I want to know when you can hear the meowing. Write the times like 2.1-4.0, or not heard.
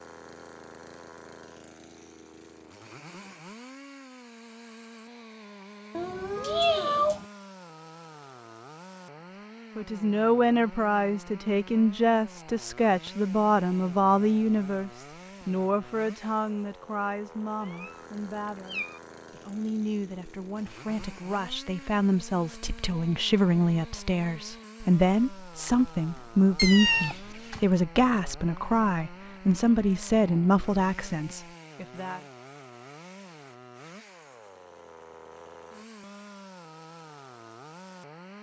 6.0-7.2, 17.6-19.0, 26.6-27.6.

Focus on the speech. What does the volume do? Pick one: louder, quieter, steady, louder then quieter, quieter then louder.
quieter then louder.